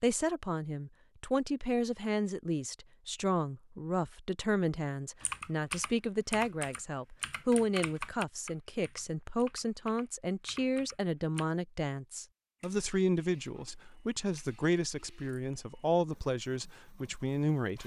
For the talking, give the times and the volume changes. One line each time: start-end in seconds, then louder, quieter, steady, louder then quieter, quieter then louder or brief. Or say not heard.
0.0-17.8 steady.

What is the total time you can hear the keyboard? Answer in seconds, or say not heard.
6 s.